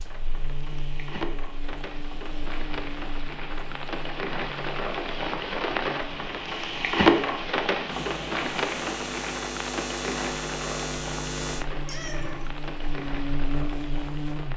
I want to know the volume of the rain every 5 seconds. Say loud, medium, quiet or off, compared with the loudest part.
medium, loud, medium.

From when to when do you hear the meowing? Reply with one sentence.
You can hear the meowing from 11.8 to 12.5 s.